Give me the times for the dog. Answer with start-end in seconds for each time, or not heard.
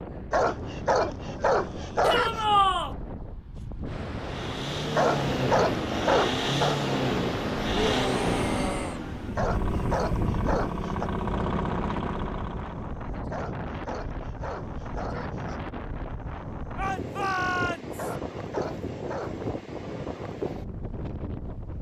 0.3-2.5, 5.0-6.8, 9.3-11.1, 13.3-15.7, 17.9-19.4.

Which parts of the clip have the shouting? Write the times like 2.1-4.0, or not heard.
2.0-3.0, 7.7-9.0, 16.8-17.9.